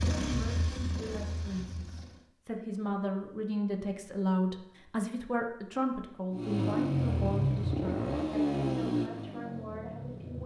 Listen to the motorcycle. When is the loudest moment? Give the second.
7 s.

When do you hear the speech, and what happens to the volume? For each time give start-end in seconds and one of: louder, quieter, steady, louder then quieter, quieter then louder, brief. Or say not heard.
0.2-10.4 louder then quieter.